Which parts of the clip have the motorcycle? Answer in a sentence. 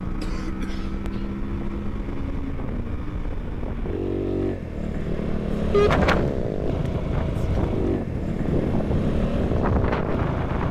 The motorcycle can be heard from 0.0 to 10.6 s.